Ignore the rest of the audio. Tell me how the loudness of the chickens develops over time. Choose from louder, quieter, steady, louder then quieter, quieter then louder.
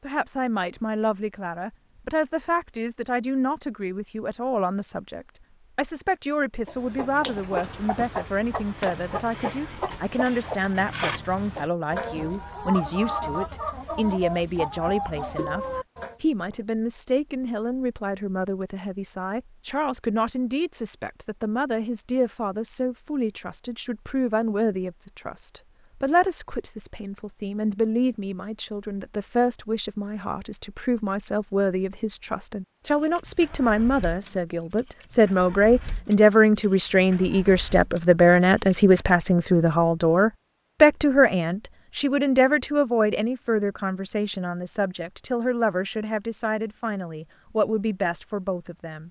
steady.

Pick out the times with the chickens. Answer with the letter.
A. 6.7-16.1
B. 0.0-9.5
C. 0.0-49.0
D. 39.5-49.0
A.